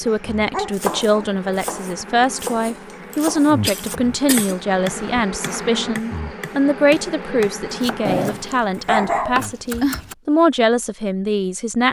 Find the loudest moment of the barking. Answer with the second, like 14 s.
9 s.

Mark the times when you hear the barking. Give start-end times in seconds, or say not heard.
0.1-1.4, 8.1-10.0.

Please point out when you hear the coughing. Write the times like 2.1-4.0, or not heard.
3.1-4.6.